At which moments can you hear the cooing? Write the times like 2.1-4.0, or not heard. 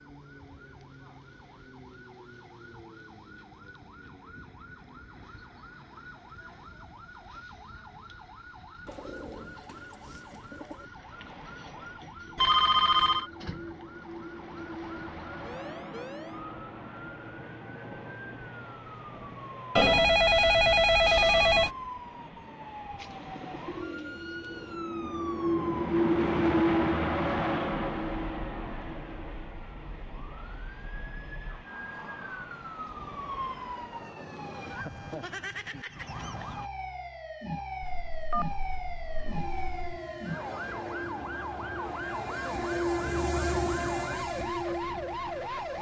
8.8-10.9, 22.9-24.8.